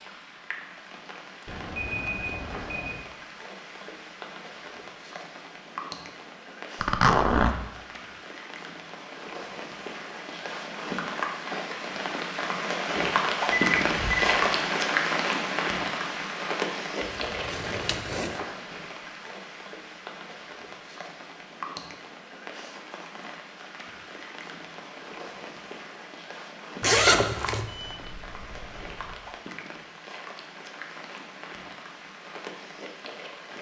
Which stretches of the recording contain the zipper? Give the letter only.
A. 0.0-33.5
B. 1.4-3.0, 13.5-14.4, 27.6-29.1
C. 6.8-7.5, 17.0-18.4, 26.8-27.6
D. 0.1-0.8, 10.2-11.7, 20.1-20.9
C.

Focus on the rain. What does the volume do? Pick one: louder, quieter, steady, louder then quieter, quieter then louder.
louder then quieter.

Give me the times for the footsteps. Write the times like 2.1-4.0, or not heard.
not heard.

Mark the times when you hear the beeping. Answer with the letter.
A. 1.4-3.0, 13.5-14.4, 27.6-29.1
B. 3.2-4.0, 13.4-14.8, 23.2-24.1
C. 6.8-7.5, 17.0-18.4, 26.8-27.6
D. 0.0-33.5
A.